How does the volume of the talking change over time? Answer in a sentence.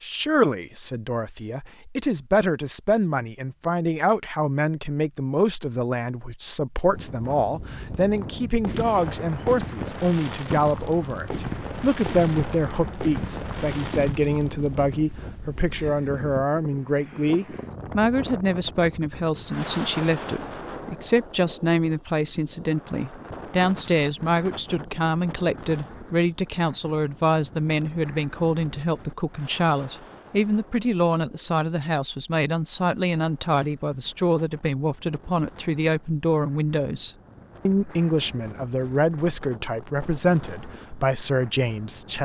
The loudness of the talking stays about the same.